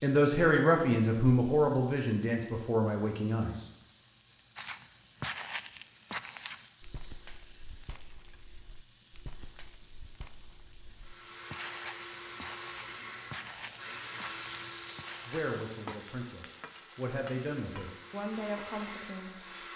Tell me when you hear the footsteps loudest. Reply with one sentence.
The loudest moment of the footsteps is at 5 seconds.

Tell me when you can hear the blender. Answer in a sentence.
You can hear the blender from 11.0 to 19.7 s.